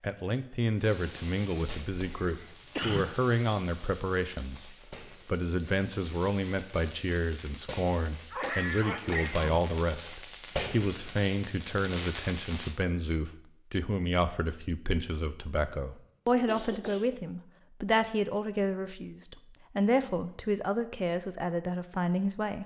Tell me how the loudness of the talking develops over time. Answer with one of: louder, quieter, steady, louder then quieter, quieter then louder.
steady.